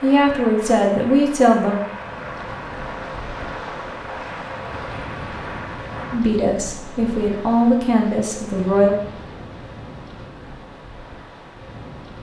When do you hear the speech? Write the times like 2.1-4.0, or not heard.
0.0-1.8, 6.1-8.9.